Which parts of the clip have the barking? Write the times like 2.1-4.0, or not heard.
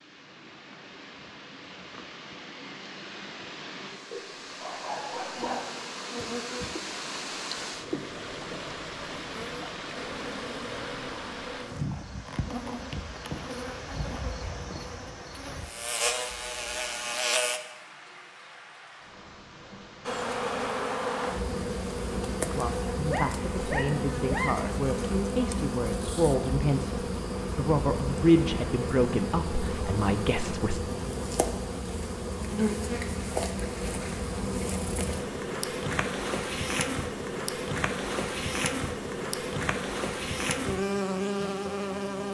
4.1-5.8, 23.1-24.6.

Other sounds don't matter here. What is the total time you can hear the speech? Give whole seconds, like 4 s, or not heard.
8 s.